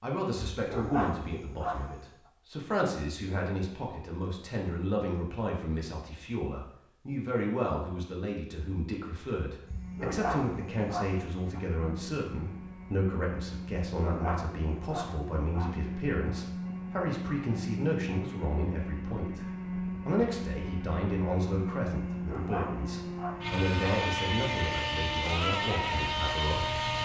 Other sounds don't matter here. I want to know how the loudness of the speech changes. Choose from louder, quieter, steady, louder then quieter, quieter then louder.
steady.